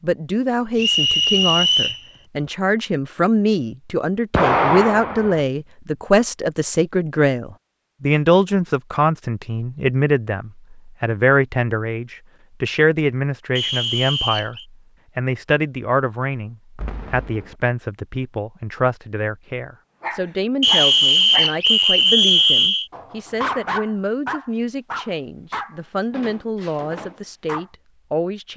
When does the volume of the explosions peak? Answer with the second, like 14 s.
5 s.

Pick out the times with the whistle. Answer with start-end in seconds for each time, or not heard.
0.8-2.0, 13.6-14.7, 20.6-22.9.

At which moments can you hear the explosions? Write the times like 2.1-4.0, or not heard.
4.3-5.4, 16.8-17.6.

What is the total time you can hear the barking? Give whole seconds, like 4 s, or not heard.
8 s.